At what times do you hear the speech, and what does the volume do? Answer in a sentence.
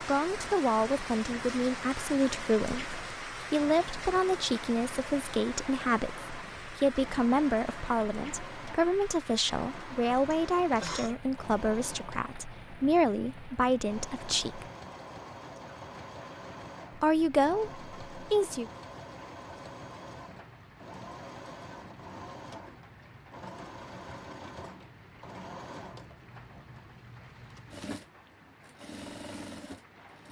You can hear the speech from 0.0 to 14.7 s, at a steady volume; and briefly from 16.9 to 18.7 s.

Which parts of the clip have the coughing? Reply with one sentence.
You can hear the coughing from 10.3 to 11.2 s.